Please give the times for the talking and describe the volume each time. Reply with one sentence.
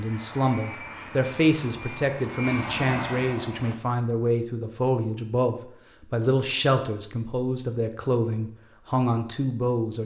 The talking can be heard from 0.0 to 10.0 s, at a steady volume.